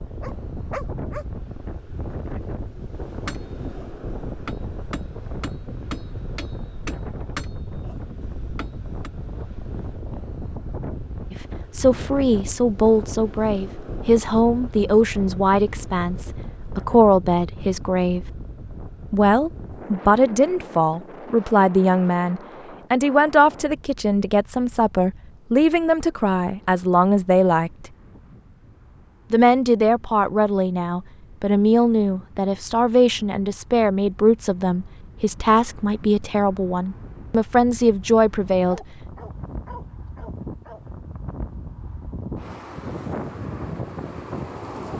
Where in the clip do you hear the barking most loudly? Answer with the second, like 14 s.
1 s.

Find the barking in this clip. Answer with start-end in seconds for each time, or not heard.
0.2-1.2, 38.6-40.9.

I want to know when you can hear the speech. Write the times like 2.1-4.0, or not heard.
11.3-18.2, 19.1-27.7, 29.3-38.8.